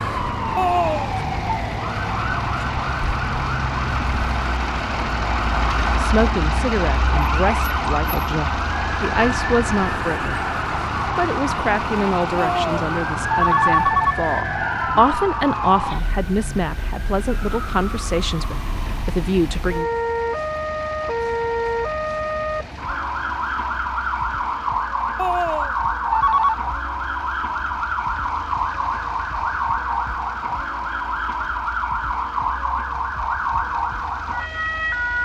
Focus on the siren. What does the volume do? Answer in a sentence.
The volume of the siren stays about the same.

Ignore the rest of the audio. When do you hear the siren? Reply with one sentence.
The siren can be heard from 0.0 to 35.2 s.